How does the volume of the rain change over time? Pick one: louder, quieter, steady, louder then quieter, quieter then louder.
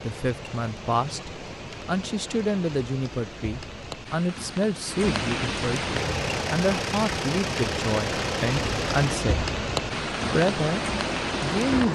louder.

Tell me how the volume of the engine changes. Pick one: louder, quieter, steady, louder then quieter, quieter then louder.
steady.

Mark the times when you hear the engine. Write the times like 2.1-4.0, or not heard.
6.0-11.9.